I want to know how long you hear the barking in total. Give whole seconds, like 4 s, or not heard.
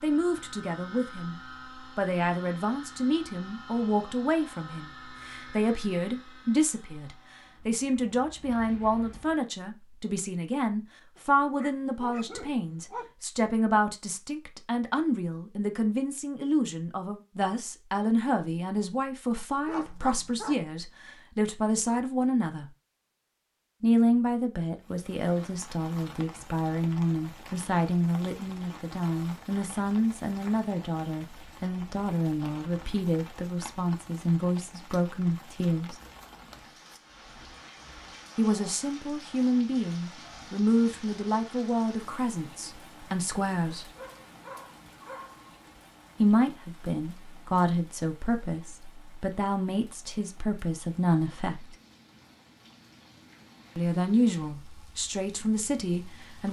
5 s.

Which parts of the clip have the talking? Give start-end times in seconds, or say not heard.
0.0-22.6, 23.8-36.0, 38.4-43.9, 46.2-51.8, 53.8-56.4.